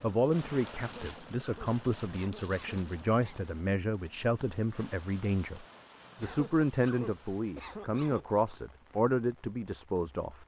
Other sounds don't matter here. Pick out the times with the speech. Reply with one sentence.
The speech can be heard from 0.0 to 10.4 s.